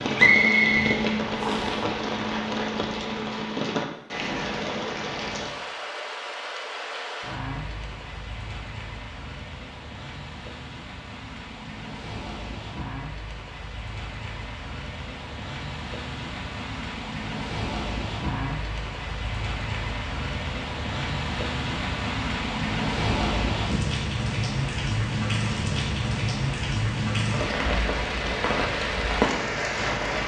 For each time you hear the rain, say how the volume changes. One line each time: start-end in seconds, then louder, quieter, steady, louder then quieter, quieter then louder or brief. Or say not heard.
0.0-30.2 quieter then louder.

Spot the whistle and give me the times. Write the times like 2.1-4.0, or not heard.
0.1-1.8.